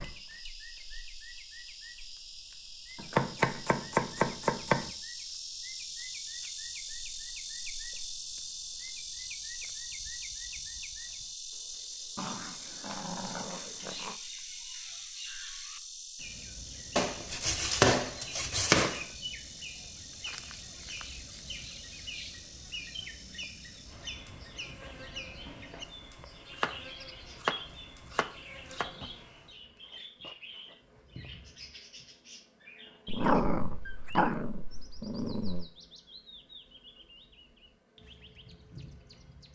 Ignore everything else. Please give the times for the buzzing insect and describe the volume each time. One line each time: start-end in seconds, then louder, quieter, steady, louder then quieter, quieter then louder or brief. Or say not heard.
0.0-39.5 quieter.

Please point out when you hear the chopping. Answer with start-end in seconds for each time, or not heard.
3.0-4.9, 16.9-19.0, 26.6-29.1.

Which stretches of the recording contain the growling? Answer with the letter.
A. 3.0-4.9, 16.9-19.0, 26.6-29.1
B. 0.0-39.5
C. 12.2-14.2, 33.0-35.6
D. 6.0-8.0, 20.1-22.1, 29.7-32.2
C.